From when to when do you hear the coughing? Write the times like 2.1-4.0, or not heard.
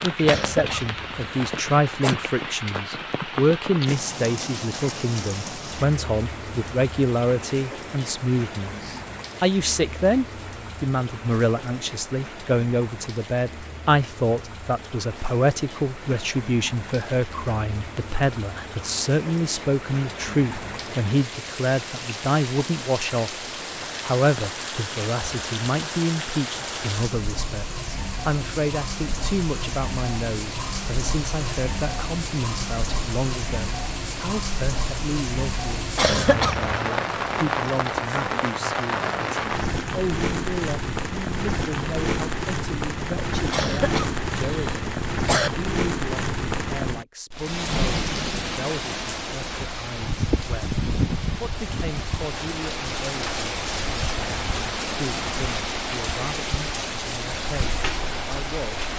0.2-2.1, 36.0-36.9, 43.5-45.5.